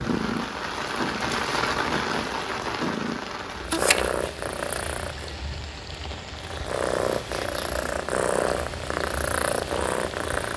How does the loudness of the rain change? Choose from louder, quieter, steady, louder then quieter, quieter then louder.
quieter.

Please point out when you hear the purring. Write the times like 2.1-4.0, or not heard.
0.0-5.3, 6.4-10.5.